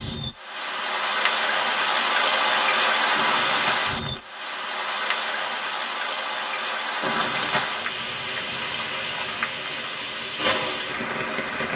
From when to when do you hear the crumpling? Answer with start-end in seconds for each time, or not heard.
3.1-4.2, 7.0-7.8.